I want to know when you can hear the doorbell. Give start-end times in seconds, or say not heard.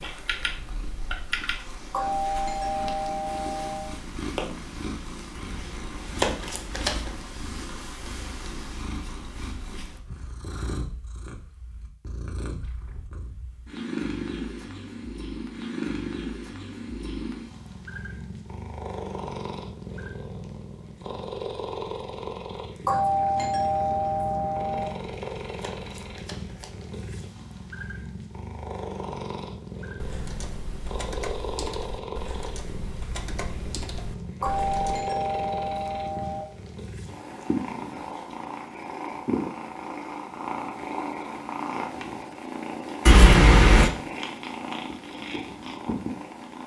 1.9-3.9, 22.9-24.9, 34.4-36.5.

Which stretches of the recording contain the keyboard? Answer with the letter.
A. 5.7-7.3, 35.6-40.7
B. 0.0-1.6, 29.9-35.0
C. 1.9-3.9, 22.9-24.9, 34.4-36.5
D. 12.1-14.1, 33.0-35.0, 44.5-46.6
B.